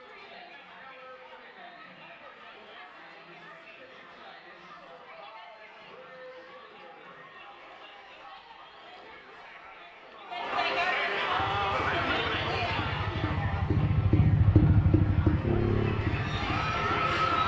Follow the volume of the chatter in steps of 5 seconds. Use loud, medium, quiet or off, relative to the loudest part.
quiet, quiet, loud, loud.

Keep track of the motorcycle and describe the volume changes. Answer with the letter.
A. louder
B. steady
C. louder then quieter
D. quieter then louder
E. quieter
C.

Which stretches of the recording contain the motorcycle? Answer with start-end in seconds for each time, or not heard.
11.3-17.4.